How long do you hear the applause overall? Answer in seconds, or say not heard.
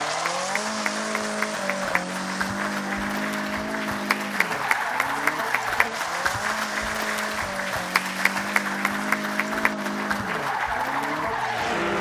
12 s.